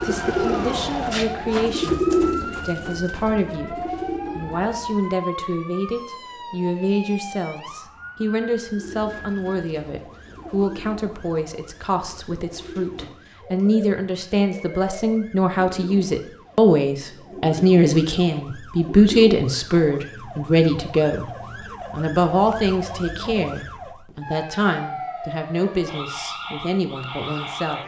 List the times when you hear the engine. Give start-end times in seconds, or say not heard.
0.0-1.8.